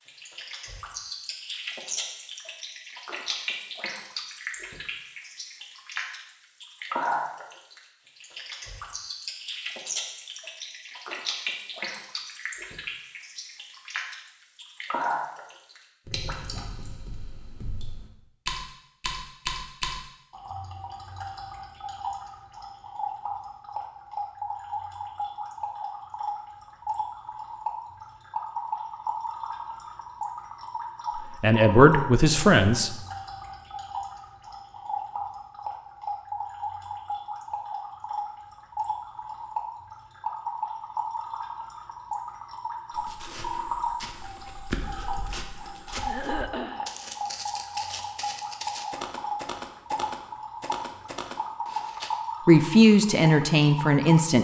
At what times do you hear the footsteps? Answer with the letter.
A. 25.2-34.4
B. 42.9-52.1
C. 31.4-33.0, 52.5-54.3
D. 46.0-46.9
B.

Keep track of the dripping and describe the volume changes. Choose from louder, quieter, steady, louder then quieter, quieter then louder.
steady.